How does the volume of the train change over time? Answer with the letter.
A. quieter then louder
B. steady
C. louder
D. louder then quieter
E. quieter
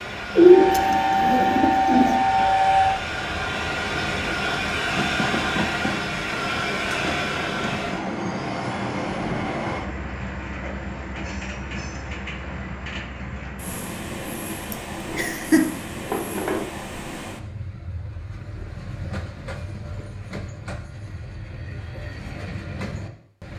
E.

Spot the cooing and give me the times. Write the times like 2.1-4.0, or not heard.
0.3-2.2, 14.9-16.7.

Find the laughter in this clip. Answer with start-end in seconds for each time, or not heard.
14.7-15.8.